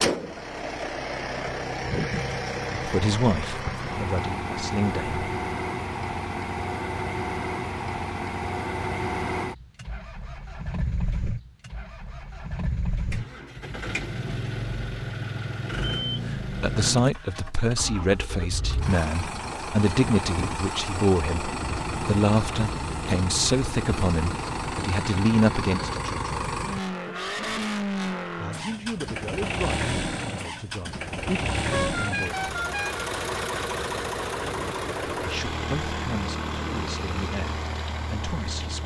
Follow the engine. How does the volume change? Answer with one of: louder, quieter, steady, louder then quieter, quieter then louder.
steady.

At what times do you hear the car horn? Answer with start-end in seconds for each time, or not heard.
31.7-33.1.